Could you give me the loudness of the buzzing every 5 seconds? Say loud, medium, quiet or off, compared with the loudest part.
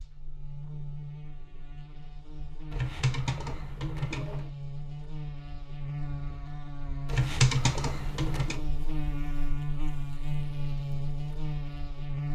medium, loud, loud.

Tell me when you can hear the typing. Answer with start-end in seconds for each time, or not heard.
2.7-4.5, 7.0-8.7.